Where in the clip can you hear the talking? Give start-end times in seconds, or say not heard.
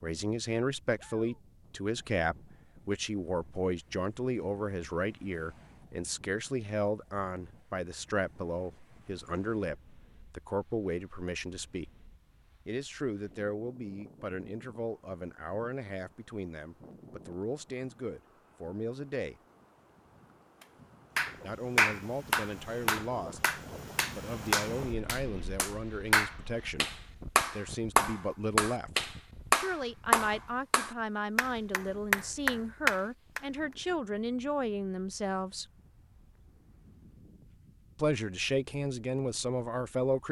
0.0-11.9, 12.7-19.4, 21.4-35.6, 38.0-40.2.